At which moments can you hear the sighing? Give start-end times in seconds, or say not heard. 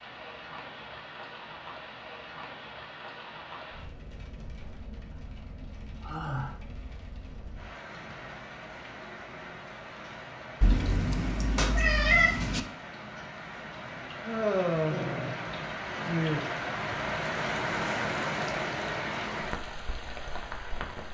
6.0-6.5, 14.2-16.4.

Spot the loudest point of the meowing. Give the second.
12 s.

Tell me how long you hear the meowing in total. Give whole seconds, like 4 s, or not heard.
2 s.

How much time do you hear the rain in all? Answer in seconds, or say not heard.
21 s.